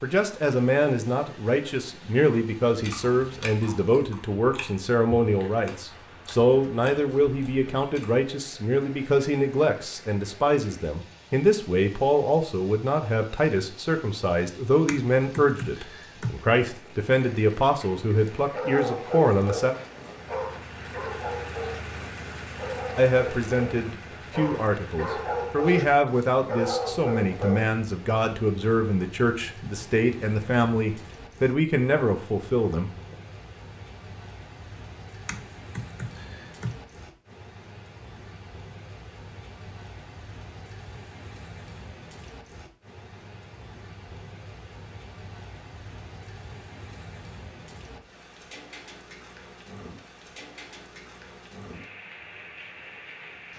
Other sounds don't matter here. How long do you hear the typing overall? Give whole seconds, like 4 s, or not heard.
3 s.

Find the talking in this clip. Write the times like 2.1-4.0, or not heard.
0.0-19.8, 22.9-33.1.